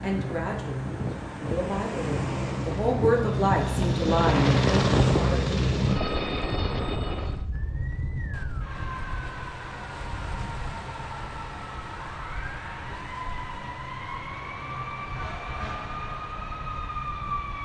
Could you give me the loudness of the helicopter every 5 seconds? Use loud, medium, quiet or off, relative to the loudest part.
loud, loud, off, off.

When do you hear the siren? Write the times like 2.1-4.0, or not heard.
7.5-17.6.